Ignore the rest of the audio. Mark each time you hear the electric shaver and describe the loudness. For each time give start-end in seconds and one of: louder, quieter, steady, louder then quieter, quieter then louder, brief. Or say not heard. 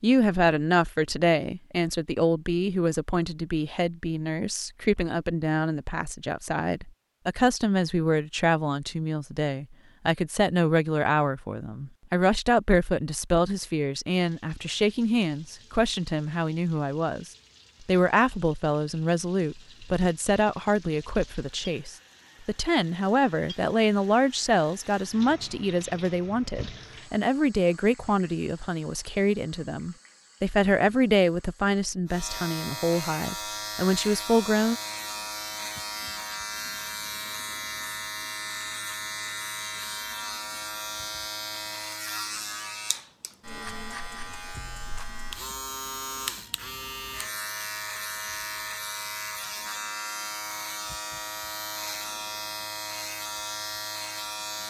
32.0-54.6 steady.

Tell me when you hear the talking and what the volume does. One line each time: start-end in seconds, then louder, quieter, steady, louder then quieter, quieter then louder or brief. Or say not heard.
0.0-34.8 steady.